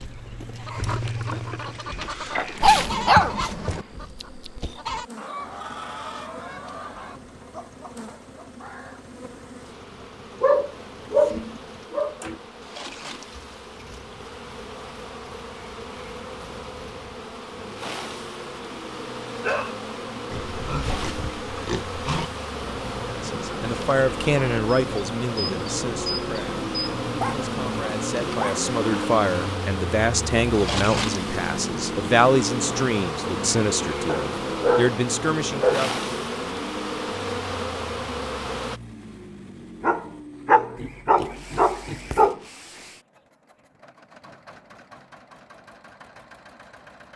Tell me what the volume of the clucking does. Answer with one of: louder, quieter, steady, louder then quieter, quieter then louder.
quieter.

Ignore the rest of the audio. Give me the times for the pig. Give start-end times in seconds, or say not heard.
0.8-2.8, 20.3-22.3, 40.8-42.3.